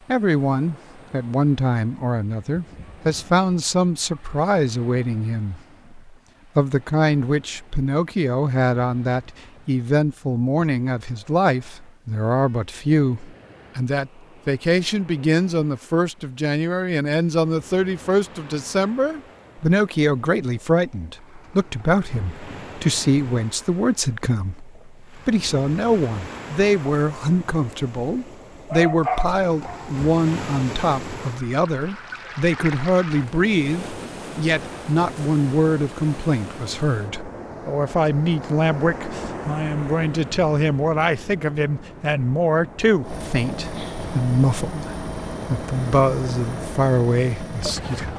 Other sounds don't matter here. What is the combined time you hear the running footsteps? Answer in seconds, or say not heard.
not heard.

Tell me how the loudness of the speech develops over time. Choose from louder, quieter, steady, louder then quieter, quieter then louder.
steady.